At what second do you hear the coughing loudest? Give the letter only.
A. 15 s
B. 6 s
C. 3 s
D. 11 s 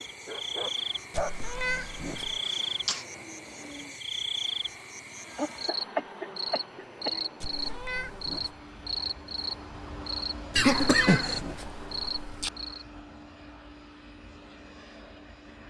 D.